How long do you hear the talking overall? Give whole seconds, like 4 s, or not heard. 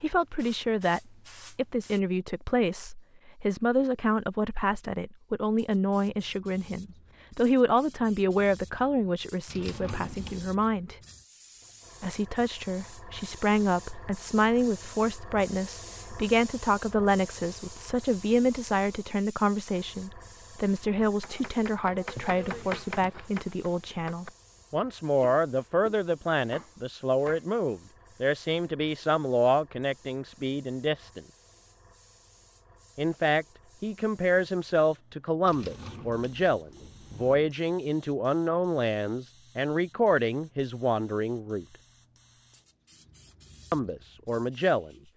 40 s.